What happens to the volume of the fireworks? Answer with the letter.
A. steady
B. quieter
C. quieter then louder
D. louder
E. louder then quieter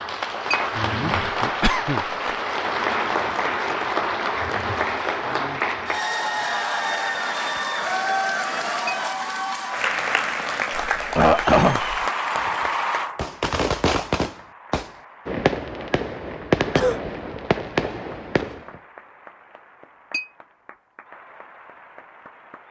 A.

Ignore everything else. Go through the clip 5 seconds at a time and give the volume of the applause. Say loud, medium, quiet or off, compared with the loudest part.
loud, loud, loud, quiet, quiet.